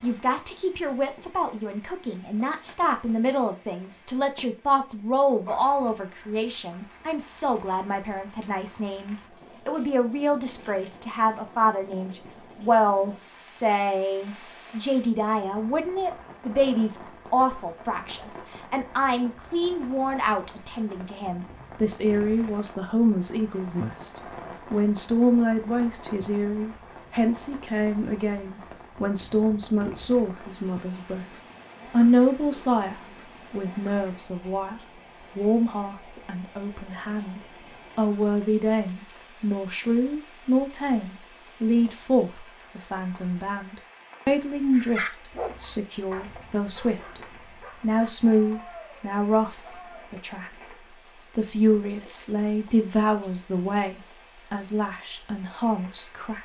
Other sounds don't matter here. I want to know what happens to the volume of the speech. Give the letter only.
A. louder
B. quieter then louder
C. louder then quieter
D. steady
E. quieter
D.